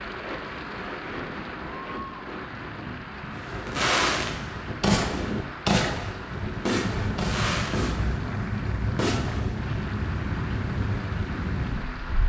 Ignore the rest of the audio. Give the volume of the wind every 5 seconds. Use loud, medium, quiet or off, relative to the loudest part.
medium, loud, loud.